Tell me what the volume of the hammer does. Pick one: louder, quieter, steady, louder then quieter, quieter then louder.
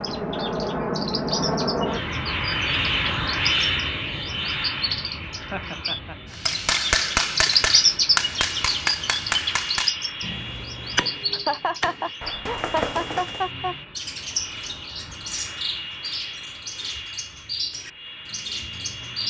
quieter.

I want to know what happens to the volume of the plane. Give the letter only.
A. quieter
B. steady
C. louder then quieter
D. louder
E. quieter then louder
A.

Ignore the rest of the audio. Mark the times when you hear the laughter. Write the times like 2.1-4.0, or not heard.
5.3-6.3, 11.3-13.8.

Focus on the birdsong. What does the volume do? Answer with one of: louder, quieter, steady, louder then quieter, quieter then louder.
louder then quieter.